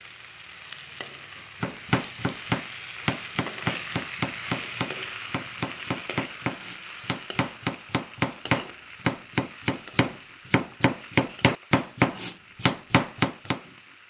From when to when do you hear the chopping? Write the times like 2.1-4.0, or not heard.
1.6-13.6.